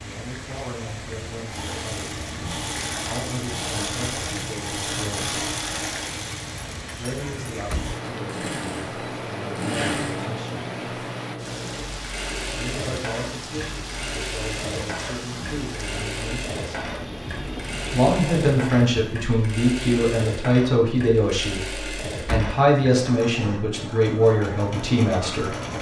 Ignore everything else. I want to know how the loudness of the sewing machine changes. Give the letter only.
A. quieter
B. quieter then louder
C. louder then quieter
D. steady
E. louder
D.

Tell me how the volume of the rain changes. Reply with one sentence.
The volume of the rain stays about the same.